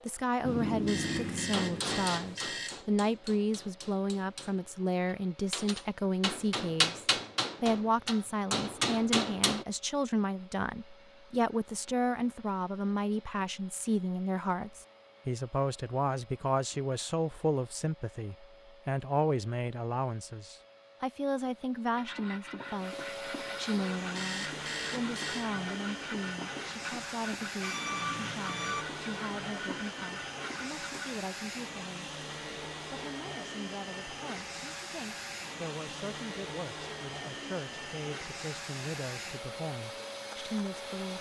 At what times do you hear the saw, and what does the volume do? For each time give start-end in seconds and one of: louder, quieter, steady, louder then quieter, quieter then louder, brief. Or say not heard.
21.9-31.1 steady.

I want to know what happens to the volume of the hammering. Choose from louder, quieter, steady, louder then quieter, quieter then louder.
quieter then louder.